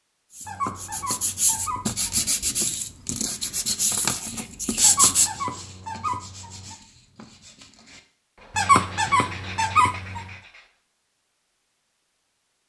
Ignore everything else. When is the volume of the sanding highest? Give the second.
5 s.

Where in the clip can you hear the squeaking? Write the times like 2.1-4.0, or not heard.
0.5-2.3, 4.8-6.8, 8.6-10.2.